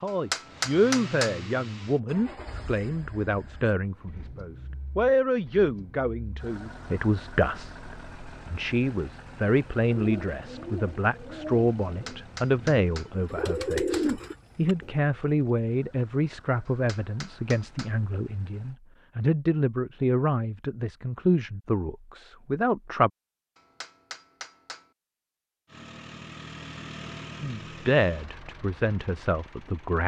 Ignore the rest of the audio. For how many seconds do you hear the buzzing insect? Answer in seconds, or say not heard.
not heard.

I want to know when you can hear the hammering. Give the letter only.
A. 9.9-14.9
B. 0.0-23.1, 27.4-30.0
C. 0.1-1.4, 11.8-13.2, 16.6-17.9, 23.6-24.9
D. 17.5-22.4
C.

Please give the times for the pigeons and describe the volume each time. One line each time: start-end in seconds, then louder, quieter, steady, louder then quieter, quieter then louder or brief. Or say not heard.
9.9-14.9 quieter then louder.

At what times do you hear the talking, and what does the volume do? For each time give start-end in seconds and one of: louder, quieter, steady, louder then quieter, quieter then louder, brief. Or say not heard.
0.0-23.1 steady
27.4-30.0 brief.